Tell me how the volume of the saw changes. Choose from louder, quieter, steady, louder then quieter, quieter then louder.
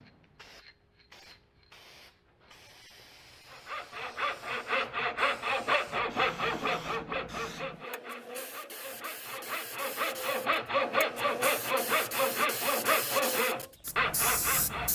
quieter then louder.